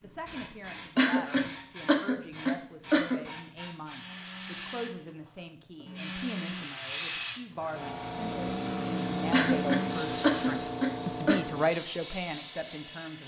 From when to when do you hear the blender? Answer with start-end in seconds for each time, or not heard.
3.9-10.8.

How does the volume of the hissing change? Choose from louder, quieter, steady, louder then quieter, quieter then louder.
louder.